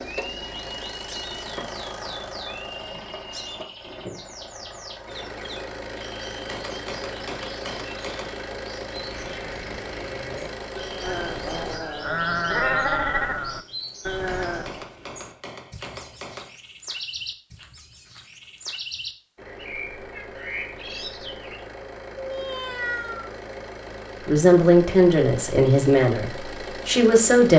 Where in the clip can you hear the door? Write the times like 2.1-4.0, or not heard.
not heard.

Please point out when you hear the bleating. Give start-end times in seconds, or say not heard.
8.9-14.8.